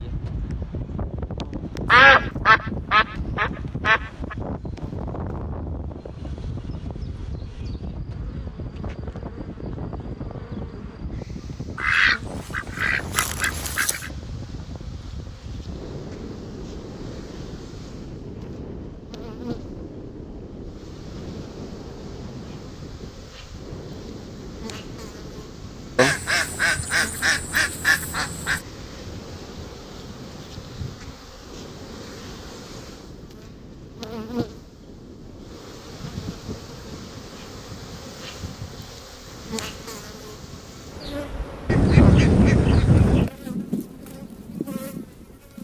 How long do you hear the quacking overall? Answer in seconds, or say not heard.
9 s.